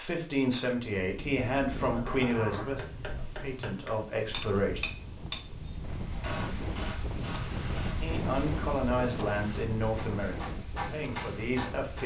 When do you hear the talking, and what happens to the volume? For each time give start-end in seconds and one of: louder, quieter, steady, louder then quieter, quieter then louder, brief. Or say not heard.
0.0-4.8 quieter then louder
8.0-12.0 quieter then louder.